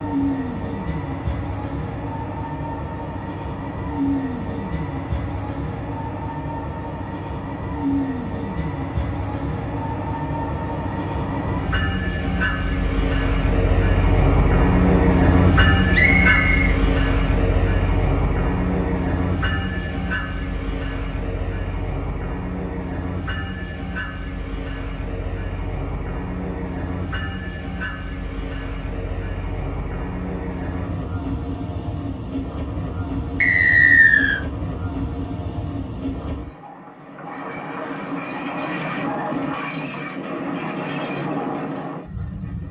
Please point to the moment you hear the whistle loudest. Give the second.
34 s.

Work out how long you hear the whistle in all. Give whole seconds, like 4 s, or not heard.
2 s.